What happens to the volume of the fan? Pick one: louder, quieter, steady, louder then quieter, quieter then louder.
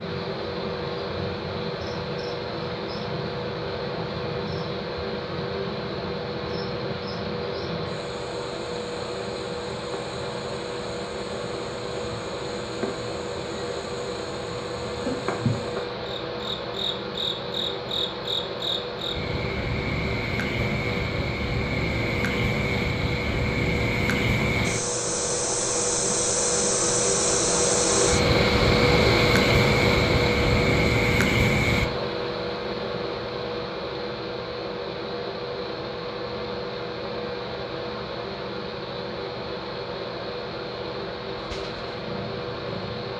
louder then quieter.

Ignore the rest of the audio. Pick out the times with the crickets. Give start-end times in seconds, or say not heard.
0.0-31.9.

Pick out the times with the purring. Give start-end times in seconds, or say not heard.
41.4-43.1.